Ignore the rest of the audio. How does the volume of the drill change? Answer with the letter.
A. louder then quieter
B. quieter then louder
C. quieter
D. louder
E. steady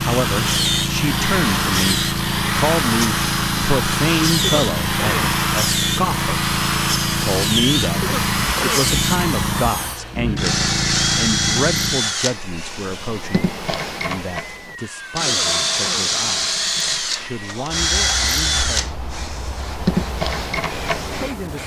E.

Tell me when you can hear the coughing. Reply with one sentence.
You can hear the coughing from 4.3 to 5.3 s, from 8.0 to 8.9 s and from 15.2 to 16.1 s.